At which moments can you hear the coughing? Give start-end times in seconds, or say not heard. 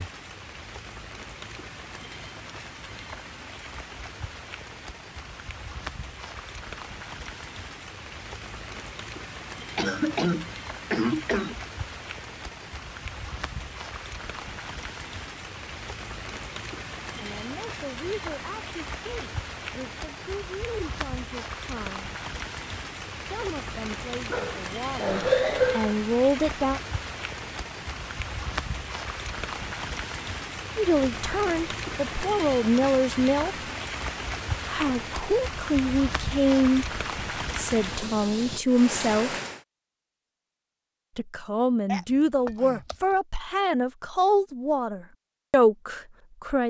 9.8-11.6, 24.3-25.9, 41.9-43.0.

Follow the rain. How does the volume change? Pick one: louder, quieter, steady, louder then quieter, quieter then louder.
louder.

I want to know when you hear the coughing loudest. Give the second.
25 s.